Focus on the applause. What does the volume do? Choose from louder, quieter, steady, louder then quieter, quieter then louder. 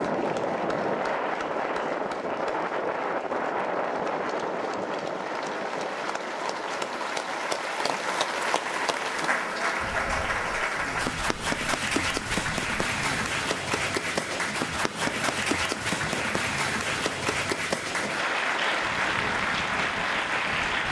louder.